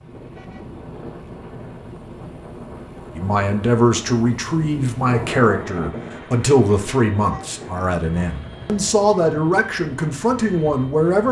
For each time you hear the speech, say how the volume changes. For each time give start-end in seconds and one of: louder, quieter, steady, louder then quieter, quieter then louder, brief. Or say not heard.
3.1-11.2 steady.